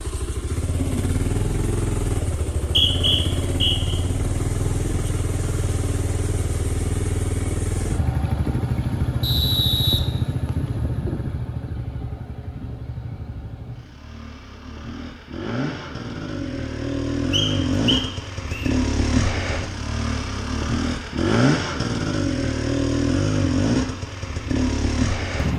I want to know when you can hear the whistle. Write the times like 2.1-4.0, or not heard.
2.6-4.0, 9.2-10.7, 17.3-18.7.